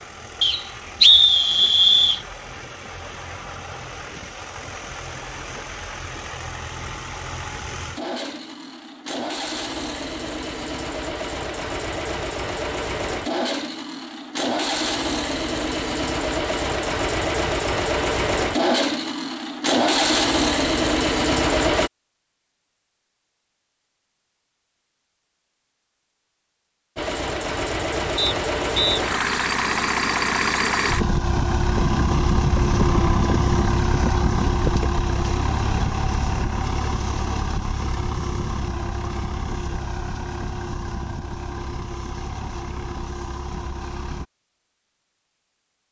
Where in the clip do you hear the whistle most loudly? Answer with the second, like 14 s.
1 s.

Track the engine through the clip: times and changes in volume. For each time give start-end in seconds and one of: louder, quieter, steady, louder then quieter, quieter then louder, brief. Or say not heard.
0.0-21.9 louder
26.9-44.2 quieter.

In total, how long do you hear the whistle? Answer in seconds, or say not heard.
3 s.